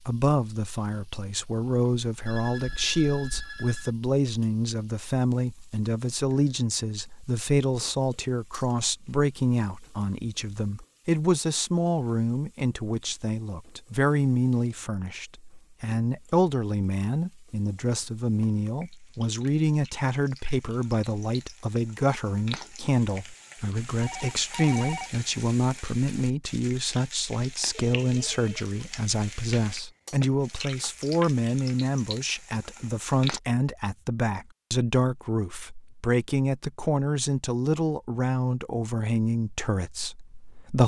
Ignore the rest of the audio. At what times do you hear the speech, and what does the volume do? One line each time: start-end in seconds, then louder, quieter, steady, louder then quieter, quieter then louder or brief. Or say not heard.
0.1-40.8 steady.